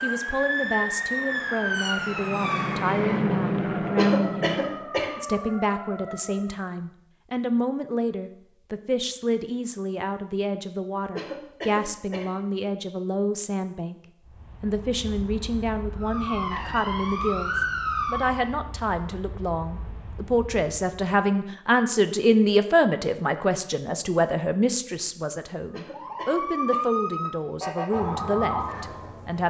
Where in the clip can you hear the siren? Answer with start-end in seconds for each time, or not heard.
0.0-6.7, 16.0-18.5, 25.9-29.4.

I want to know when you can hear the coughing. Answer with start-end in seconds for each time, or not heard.
4.0-5.2, 11.2-12.4, 25.7-26.8.